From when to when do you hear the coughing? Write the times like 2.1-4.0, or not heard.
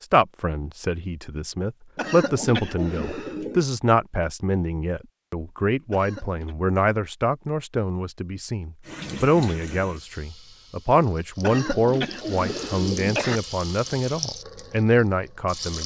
1.9-3.6, 5.9-6.5, 11.4-13.4.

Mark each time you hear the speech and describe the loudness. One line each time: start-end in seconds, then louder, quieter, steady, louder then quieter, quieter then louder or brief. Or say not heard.
0.0-15.8 steady.